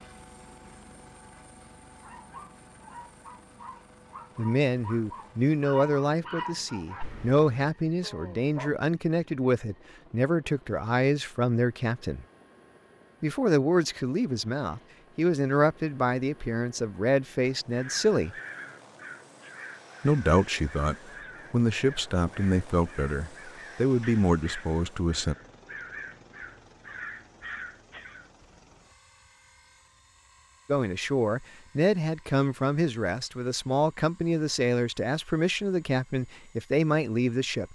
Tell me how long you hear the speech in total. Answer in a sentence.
You can hear the speech for 25 seconds altogether.